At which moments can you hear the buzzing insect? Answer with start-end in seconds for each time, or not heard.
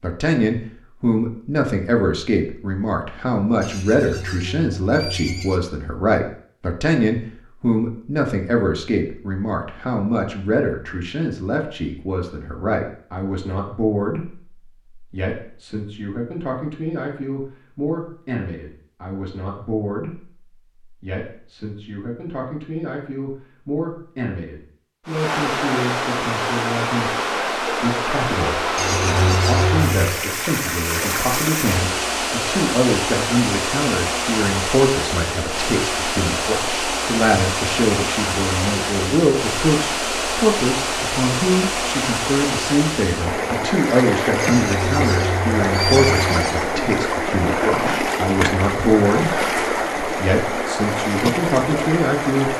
not heard.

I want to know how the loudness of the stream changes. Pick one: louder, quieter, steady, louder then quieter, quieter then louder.
steady.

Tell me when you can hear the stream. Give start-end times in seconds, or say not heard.
25.1-52.5.